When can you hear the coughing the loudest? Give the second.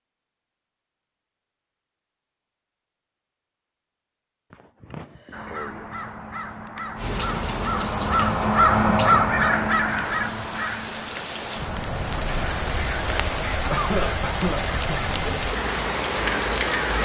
14 s.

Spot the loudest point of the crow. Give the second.
9 s.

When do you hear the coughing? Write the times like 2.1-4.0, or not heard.
4.5-5.6, 13.7-15.1.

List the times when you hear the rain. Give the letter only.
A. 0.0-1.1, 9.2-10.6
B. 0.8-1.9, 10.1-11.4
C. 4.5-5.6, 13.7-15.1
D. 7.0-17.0
D.